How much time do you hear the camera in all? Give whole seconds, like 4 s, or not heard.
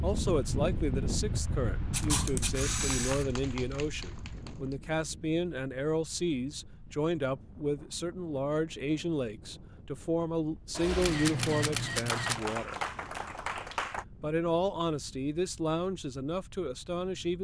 3 s.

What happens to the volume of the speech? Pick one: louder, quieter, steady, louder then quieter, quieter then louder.
steady.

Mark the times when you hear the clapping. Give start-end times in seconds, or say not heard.
2.9-4.8, 12.1-14.1.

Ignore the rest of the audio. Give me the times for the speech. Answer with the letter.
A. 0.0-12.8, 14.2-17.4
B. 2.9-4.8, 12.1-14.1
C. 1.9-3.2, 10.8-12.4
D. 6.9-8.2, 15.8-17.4
A.